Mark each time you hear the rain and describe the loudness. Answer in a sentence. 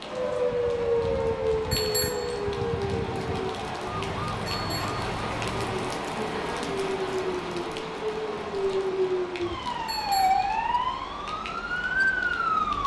The rain can be heard from 0.0 to 12.8 s, getting louder then quieter.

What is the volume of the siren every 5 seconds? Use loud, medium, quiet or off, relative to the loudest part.
loud, medium, loud.